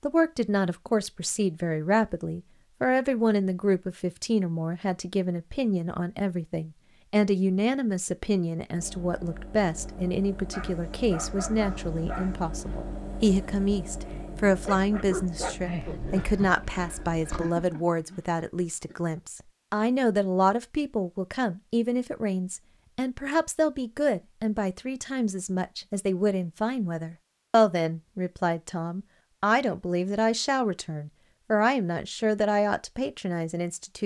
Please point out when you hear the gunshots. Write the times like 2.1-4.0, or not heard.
not heard.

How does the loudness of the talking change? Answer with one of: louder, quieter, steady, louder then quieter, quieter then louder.
steady.